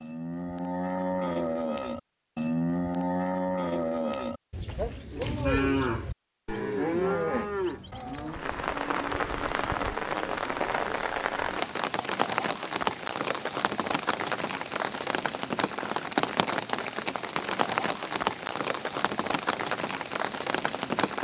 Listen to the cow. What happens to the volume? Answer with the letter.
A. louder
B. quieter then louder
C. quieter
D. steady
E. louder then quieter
C.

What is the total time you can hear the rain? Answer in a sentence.
The rain can be heard for 13 seconds in total.